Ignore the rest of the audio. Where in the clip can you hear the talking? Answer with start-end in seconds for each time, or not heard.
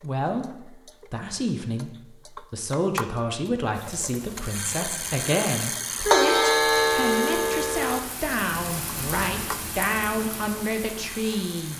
0.0-11.7.